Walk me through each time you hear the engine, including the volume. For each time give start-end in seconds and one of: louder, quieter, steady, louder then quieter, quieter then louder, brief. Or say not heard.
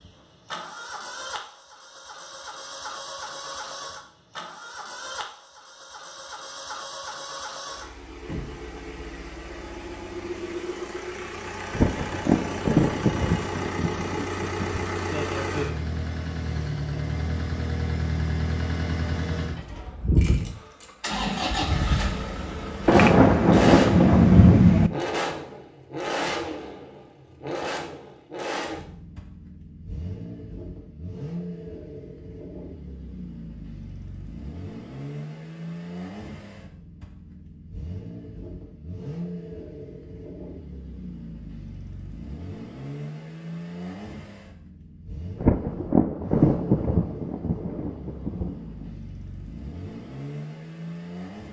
0.0-51.4 louder then quieter.